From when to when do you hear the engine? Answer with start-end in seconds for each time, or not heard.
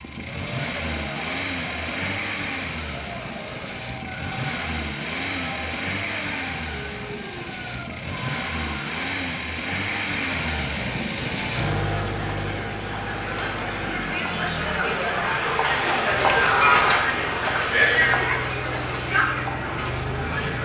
0.0-20.6.